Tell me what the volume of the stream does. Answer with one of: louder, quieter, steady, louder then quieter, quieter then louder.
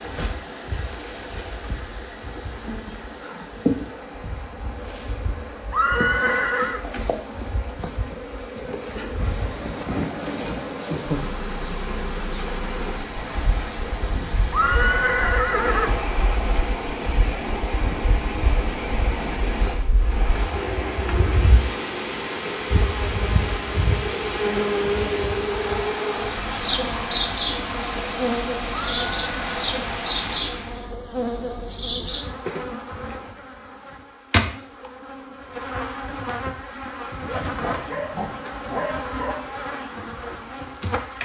louder.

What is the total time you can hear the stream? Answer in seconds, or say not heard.
31 s.